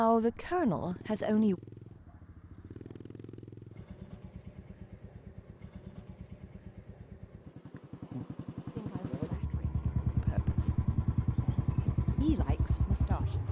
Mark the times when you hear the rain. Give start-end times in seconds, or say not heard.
not heard.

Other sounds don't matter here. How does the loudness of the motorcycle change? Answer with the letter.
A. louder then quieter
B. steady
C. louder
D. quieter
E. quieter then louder
C.